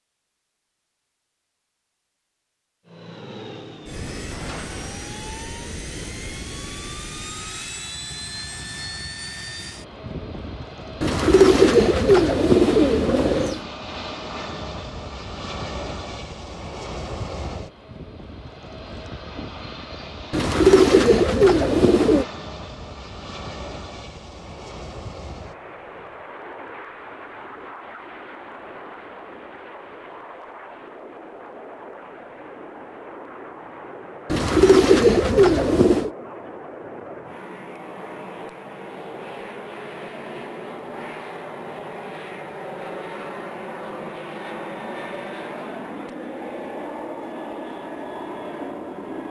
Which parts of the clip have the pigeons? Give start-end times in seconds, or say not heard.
11.0-13.6, 20.3-22.2, 34.3-36.1.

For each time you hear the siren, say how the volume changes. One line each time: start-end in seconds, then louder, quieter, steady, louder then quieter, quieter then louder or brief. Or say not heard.
not heard.